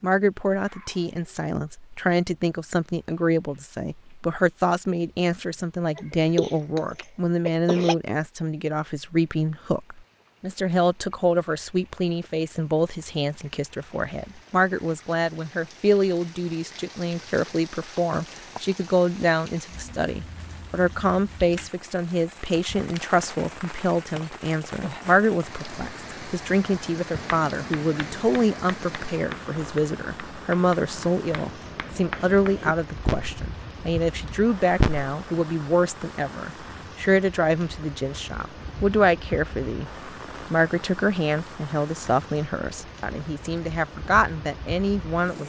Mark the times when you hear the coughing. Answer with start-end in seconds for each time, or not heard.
6.0-8.0.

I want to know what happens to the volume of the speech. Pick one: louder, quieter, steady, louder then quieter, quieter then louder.
steady.